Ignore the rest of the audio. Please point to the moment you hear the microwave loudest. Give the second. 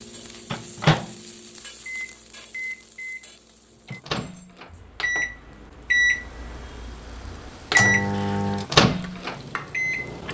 8 s.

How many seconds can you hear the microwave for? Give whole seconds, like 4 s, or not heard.
10 s.